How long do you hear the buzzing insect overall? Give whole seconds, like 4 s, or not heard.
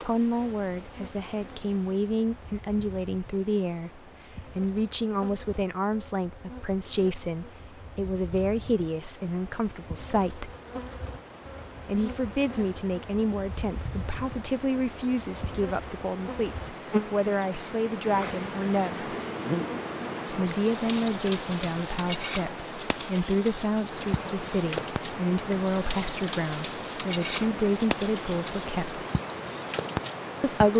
31 s.